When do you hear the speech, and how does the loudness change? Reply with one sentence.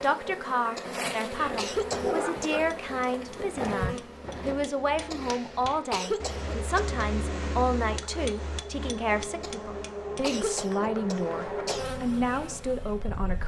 The speech can be heard from 0.0 to 13.4 s, at a steady volume.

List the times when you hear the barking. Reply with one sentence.
You can hear the barking from 1.4 to 2.6 s.